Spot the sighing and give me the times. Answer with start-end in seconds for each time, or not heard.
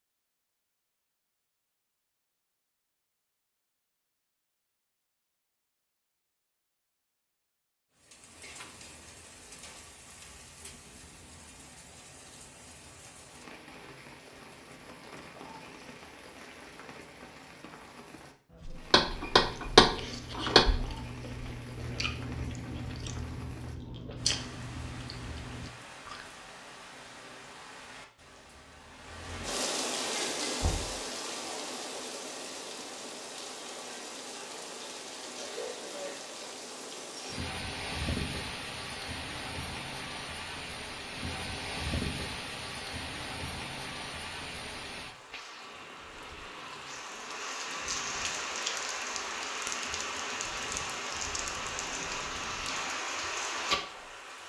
not heard.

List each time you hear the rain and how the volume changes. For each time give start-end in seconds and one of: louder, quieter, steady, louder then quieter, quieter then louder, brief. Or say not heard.
8.0-54.4 louder.